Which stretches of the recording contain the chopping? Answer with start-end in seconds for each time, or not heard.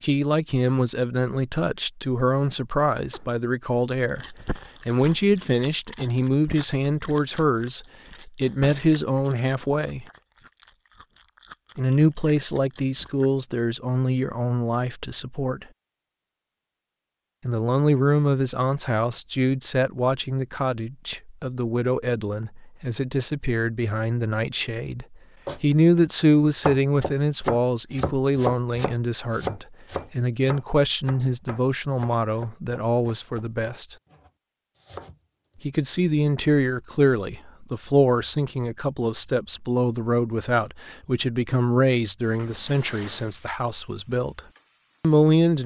25.4-35.6.